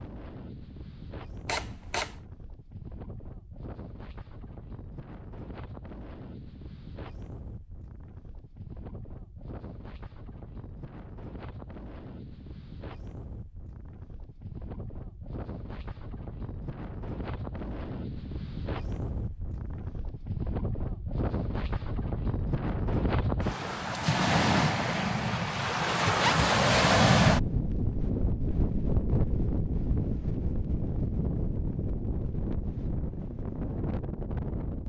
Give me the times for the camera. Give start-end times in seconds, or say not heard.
1.4-2.2.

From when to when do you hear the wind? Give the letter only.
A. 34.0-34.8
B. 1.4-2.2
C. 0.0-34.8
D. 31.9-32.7
C.